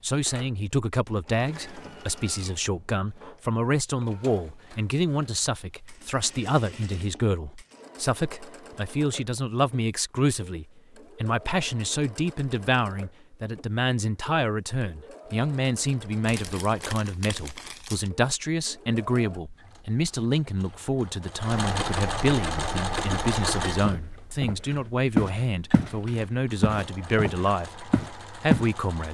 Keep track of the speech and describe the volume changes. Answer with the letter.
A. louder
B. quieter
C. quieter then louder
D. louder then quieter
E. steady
E.